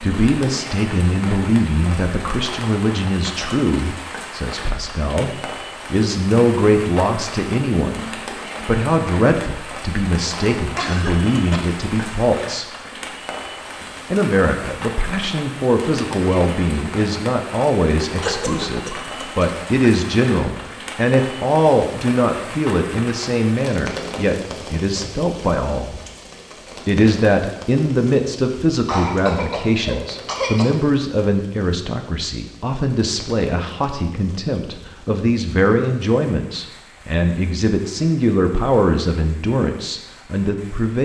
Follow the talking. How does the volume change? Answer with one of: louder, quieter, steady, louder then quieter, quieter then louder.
steady.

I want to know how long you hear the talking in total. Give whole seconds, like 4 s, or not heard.
39 s.